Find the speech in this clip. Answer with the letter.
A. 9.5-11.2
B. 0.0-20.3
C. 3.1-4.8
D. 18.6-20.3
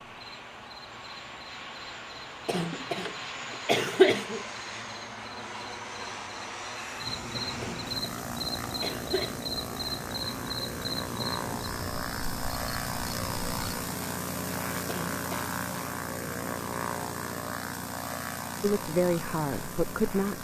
D.